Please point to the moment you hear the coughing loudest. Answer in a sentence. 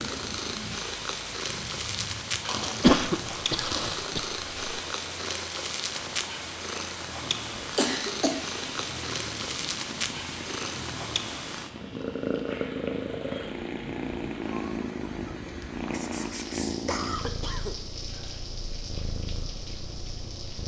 The loudest moment of the coughing is at 3 seconds.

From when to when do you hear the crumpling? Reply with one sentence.
You can hear the crumpling from 2.5 to 4.0 s.